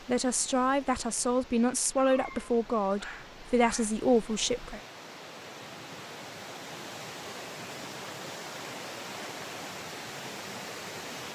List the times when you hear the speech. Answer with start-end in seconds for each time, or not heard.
0.1-4.8.